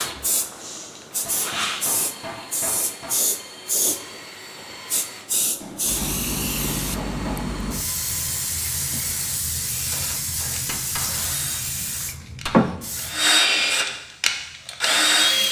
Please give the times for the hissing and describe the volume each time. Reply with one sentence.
You can hear the hissing from 0.0 to 15.4 s, at a steady volume.